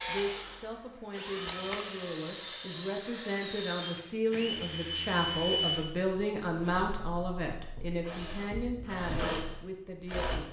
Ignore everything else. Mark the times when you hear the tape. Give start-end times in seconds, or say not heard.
1.4-1.9.